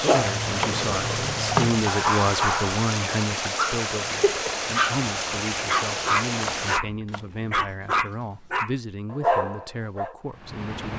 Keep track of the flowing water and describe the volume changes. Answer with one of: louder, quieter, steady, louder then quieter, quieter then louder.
steady.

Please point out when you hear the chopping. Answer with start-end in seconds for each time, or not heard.
0.1-1.9, 6.5-8.1.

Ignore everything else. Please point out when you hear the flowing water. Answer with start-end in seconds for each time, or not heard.
0.0-6.8.